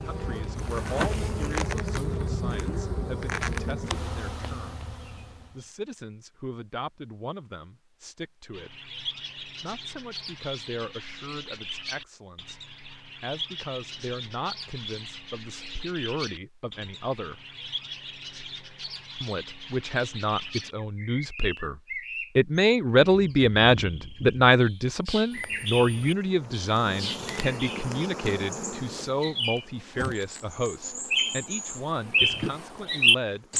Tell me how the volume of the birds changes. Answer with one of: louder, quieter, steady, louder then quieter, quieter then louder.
louder.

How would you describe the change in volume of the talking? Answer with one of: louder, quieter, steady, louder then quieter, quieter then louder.
louder then quieter.